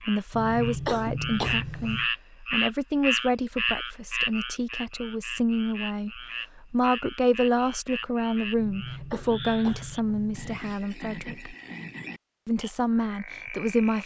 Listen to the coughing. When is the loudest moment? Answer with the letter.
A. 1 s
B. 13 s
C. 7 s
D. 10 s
A.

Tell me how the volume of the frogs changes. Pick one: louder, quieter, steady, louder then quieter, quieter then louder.
quieter.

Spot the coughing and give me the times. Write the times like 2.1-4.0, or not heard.
0.3-2.0, 8.6-10.6.